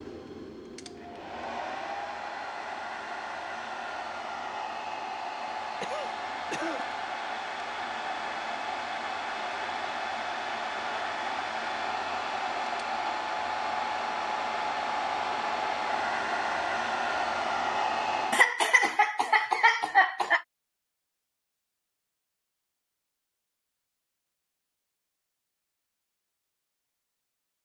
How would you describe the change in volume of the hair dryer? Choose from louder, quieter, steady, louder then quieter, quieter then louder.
louder.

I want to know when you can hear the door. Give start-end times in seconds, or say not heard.
not heard.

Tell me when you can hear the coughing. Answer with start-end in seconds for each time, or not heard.
5.8-7.0, 18.3-20.4.